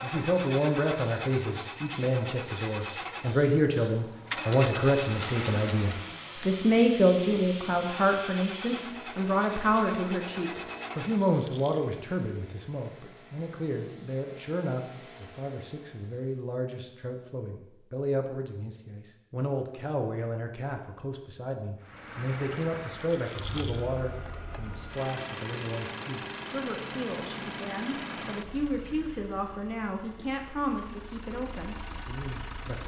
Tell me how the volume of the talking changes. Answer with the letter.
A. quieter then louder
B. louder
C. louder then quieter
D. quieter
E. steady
D.